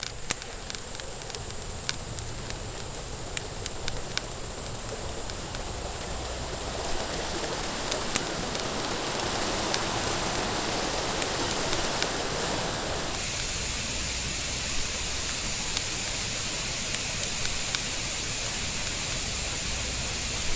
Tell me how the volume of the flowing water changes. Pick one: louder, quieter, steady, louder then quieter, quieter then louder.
louder.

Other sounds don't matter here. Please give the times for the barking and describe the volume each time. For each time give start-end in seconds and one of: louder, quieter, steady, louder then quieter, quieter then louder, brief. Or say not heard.
not heard.